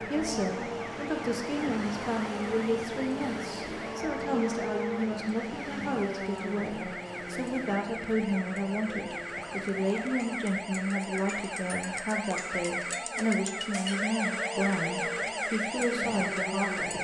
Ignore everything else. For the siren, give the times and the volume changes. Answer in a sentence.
You can hear the siren from 0.0 to 16.9 s, getting louder.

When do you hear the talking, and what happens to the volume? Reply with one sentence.
The talking can be heard from 0.0 to 16.9 s, at a steady volume.